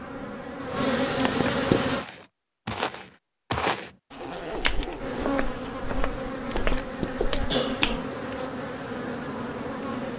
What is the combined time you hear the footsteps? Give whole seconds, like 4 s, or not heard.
6 s.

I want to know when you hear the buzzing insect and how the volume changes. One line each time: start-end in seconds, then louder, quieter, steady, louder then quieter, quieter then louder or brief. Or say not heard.
0.0-2.0 brief
5.0-10.1 steady.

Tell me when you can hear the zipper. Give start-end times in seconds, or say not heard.
4.1-5.4.